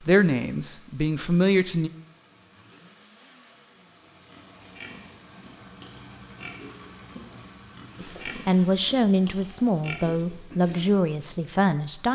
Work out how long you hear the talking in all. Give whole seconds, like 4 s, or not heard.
6 s.